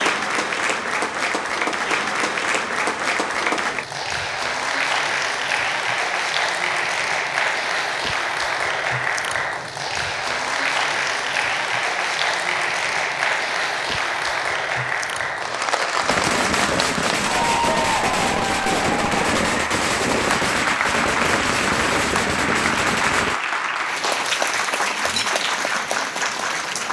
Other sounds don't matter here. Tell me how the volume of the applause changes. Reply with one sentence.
The volume of the applause stays about the same.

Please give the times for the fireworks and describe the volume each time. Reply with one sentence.
You can hear the fireworks from 15.9 to 23.4 s, at a steady volume.